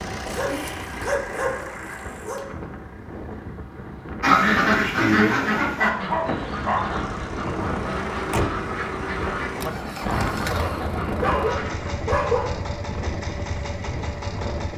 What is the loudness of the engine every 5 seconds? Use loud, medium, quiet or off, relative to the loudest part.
medium, loud, loud.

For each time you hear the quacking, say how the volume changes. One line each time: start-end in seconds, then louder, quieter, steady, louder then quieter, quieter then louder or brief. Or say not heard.
4.2-11.8 quieter.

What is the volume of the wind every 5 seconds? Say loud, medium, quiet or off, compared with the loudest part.
medium, loud, loud.